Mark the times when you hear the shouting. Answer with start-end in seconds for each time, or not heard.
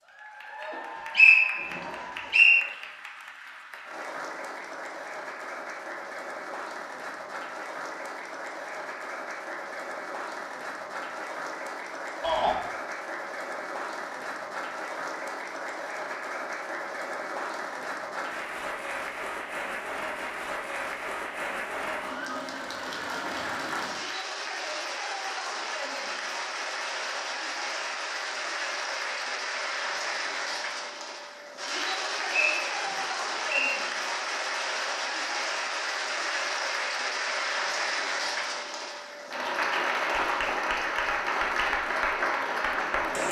12.2-12.6.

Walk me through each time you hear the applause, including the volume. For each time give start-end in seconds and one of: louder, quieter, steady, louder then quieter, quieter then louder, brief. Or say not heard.
0.0-43.2 louder.